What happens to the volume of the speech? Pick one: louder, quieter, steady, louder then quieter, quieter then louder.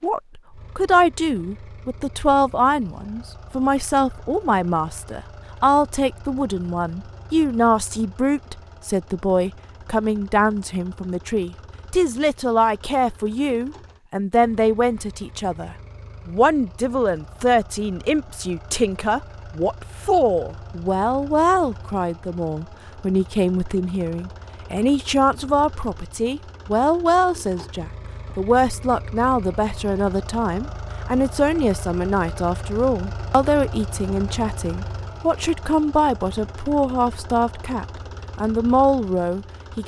steady.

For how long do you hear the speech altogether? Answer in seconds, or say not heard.
40 s.